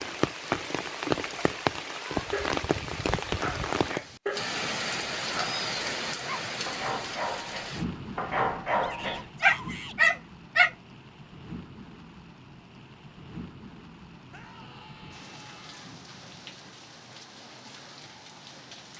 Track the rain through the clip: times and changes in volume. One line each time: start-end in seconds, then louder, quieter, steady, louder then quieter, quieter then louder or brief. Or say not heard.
0.0-18.9 quieter.